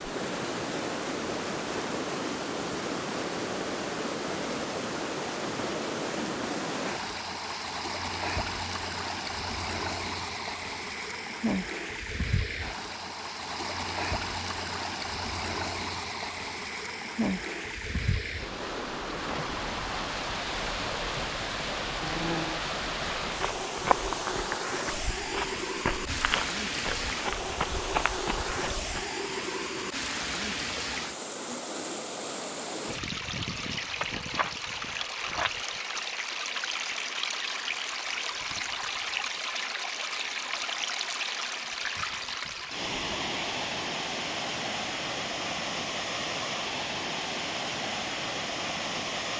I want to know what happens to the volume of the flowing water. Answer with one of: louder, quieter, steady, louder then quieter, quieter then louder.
steady.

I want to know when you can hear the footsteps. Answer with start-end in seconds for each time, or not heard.
23.4-29.1.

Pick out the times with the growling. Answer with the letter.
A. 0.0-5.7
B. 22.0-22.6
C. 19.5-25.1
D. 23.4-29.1
B.